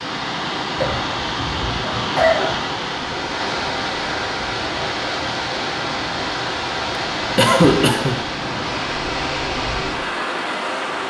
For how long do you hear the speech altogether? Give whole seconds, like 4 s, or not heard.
not heard.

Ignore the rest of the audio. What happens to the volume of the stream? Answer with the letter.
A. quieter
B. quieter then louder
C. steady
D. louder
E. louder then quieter
C.